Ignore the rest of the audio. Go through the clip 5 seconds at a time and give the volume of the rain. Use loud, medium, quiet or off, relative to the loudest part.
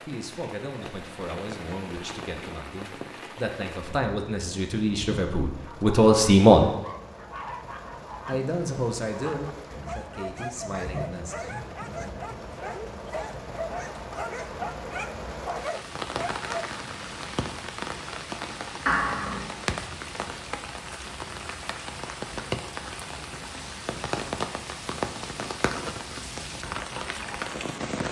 medium, medium, medium, loud, loud, loud.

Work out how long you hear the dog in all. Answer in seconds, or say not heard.
11 s.